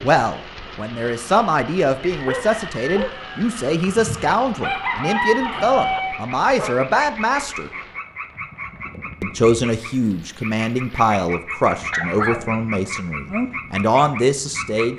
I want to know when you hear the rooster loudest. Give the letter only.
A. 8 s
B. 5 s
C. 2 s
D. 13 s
B.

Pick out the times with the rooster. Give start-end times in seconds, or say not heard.
2.0-6.2.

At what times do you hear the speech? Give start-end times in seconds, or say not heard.
0.0-7.7, 9.2-14.9.